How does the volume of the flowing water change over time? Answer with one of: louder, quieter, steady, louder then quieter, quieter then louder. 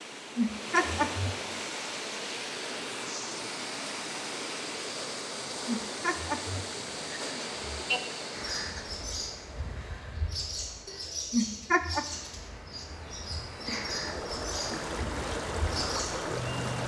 quieter then louder.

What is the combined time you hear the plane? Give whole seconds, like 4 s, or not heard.
not heard.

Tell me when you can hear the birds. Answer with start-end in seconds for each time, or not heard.
8.3-16.8.